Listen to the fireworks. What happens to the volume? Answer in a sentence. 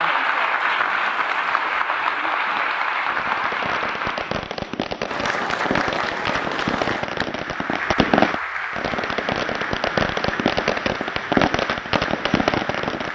The loudness of the fireworks goes up.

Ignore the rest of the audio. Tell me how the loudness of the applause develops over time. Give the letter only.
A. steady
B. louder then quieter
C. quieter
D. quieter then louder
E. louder
C.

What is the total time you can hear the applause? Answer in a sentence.
The applause can be heard for 13 seconds in total.